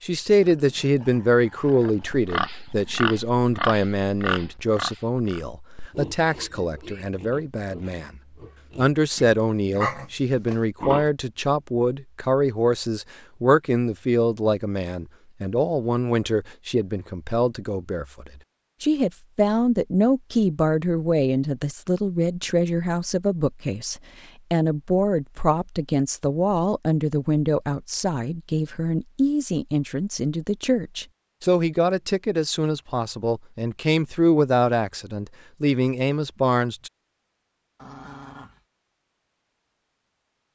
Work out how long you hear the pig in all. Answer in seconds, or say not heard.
9 s.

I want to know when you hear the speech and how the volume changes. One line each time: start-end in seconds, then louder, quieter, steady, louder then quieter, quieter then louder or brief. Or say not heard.
0.0-8.1 quieter
8.8-36.9 steady.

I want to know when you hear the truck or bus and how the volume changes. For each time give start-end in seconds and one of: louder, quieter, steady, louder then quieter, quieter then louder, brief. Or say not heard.
not heard.